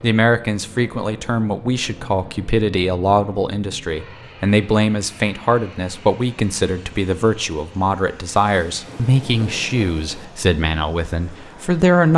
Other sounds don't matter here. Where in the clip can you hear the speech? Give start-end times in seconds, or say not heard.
0.0-12.1.